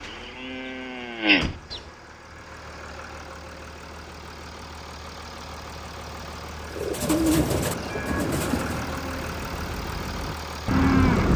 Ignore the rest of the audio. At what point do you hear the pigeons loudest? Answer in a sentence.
The volume of the pigeons peaks at 7 seconds.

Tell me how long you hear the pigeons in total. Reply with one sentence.
The pigeons can be heard for 2 seconds in total.